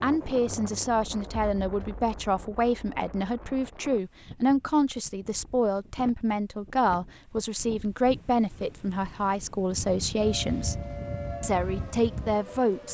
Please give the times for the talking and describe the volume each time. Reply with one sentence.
You can hear the talking from 0.0 to 12.9 s, at a steady volume.